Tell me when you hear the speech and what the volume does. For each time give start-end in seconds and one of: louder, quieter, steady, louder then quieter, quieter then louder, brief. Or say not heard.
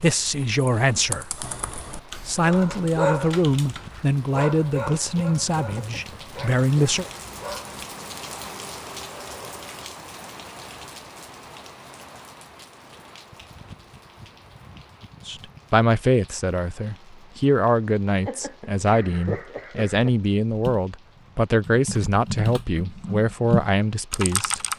0.0-1.4 brief
2.2-7.0 steady
15.2-24.6 steady.